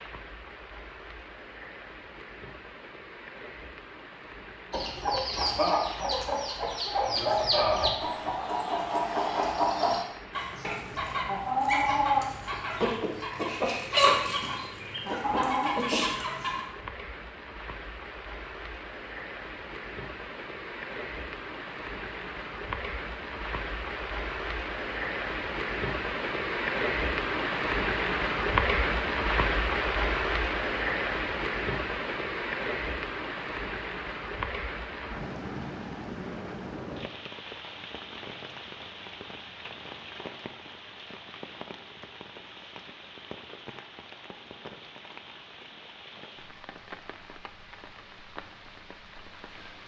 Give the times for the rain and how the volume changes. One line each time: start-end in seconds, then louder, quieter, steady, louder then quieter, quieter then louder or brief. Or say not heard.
0.0-49.8 louder then quieter.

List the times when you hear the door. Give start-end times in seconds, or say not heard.
not heard.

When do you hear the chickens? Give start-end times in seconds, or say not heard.
4.7-16.6.